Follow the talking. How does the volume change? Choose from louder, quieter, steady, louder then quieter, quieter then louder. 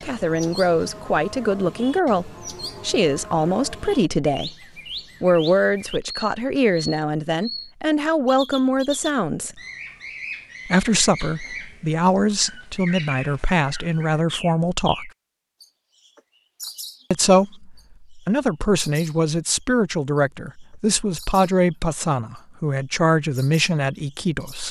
steady.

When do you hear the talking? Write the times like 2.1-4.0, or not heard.
0.0-4.5, 5.2-9.6, 10.7-15.1, 17.1-24.6.